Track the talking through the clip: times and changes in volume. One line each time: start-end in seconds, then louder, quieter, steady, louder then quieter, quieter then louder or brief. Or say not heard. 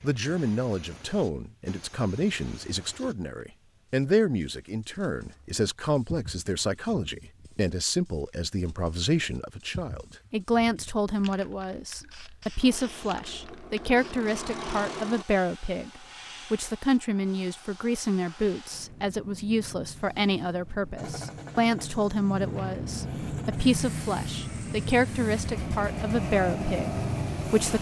0.0-27.7 steady.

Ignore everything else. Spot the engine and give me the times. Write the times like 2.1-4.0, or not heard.
12.6-15.2, 20.9-27.7.